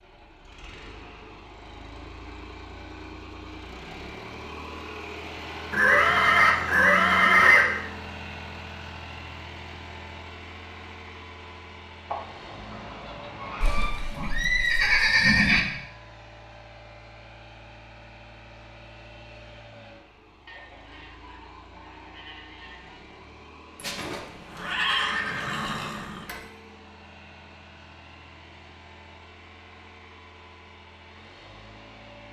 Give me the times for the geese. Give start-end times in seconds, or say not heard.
12.1-14.0, 20.4-23.1.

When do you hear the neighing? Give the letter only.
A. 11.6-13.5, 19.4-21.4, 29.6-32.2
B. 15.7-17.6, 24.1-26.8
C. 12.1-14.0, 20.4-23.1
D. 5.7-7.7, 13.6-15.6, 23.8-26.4
D.